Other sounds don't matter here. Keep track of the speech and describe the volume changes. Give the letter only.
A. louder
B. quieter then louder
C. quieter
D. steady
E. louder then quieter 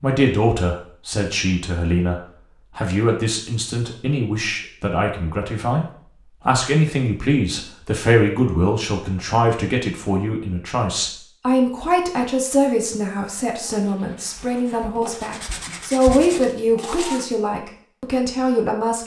D.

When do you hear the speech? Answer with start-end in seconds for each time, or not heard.
0.0-5.8, 6.5-19.0.